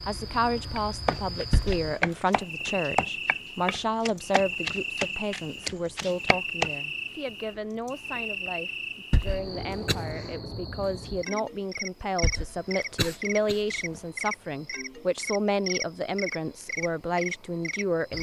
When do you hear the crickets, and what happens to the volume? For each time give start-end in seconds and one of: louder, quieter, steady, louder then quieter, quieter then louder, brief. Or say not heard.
0.0-18.1 steady.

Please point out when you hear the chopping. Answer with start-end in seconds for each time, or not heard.
0.8-6.7.